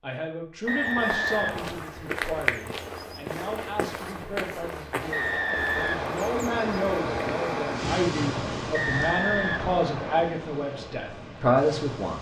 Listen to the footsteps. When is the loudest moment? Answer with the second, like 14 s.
2 s.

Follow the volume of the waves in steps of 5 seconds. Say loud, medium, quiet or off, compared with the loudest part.
off, loud, medium.